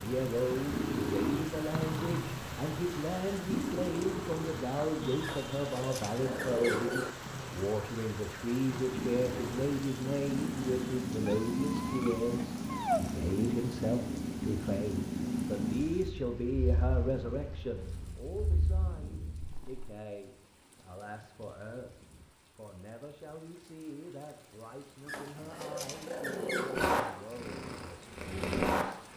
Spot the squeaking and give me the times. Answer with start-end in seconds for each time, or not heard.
5.2-7.2, 11.2-13.0, 25.1-26.9.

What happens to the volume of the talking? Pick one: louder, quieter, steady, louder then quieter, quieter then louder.
quieter.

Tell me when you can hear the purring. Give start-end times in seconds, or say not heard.
0.0-19.9, 26.7-29.1.